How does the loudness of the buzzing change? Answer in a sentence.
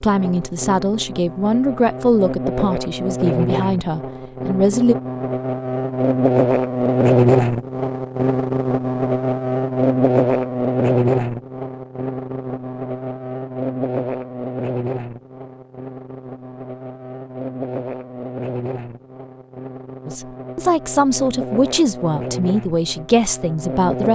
The volume of the buzzing goes up, then down.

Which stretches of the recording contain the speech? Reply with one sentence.
You can hear the speech from 0.0 to 5.0 s and from 20.1 to 24.1 s.